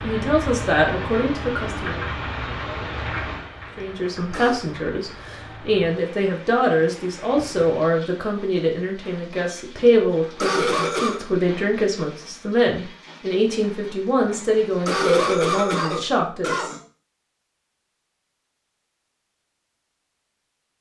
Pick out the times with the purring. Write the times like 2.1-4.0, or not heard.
not heard.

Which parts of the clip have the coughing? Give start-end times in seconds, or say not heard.
3.7-4.7, 9.8-11.2, 14.2-16.8.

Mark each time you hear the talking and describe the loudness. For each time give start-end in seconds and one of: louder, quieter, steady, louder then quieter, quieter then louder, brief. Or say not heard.
0.0-2.0 brief
3.8-16.8 steady.